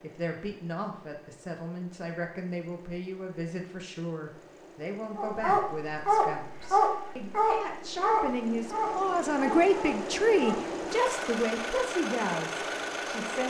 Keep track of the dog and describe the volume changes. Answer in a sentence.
The loudness of the dog goes down.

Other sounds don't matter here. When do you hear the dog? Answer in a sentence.
The dog can be heard from 5.2 to 10.7 s.